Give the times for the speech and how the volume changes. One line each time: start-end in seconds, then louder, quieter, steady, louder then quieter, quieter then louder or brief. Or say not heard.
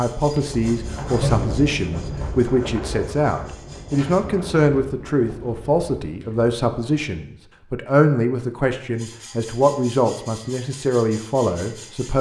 0.0-12.1 steady.